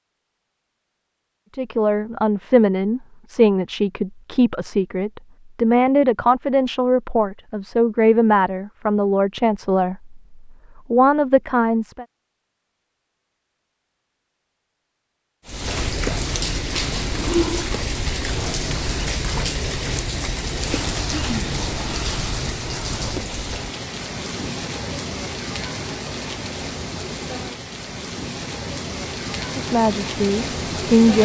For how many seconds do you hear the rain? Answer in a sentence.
You can hear the rain for 16 seconds altogether.